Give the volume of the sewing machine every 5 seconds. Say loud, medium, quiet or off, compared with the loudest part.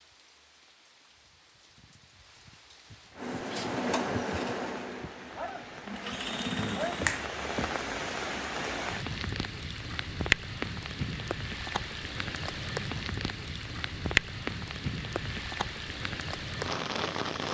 loud, medium, off, off.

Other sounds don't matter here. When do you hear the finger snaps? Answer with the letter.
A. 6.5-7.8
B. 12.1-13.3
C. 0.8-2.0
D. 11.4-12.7
A.